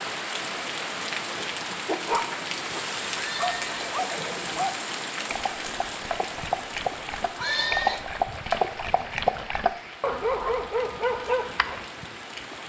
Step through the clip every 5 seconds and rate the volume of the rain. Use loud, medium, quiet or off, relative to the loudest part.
loud, medium, medium.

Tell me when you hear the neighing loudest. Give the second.
8 s.